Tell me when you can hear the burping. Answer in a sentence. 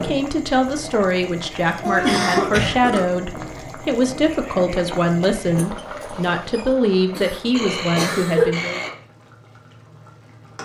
You can hear the burping from 1.8 to 3.0 s and from 7.5 to 9.0 s.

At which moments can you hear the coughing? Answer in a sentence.
The coughing can be heard from 1.9 to 2.8 s and from 7.1 to 8.6 s.